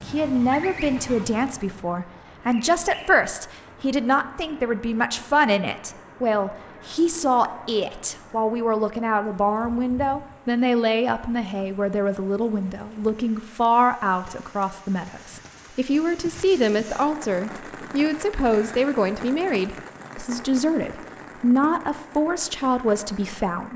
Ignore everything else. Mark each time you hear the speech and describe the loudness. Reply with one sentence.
You can hear the speech from 0.1 to 23.7 s, at a steady volume.